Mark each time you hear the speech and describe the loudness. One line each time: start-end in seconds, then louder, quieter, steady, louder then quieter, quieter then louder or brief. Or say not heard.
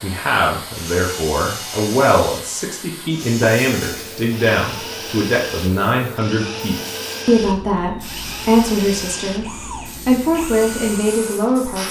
0.0-11.8 steady.